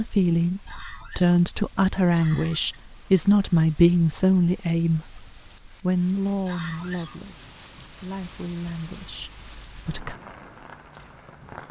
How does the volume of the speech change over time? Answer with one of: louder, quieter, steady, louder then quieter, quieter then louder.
quieter.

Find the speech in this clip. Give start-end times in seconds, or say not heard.
0.0-10.2.